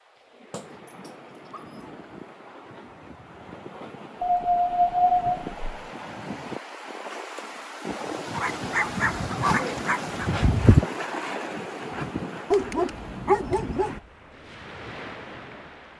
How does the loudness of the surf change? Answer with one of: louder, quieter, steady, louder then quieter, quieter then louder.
louder then quieter.